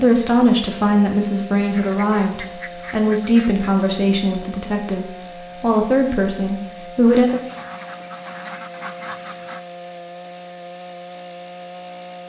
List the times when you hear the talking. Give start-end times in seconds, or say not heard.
0.0-7.4.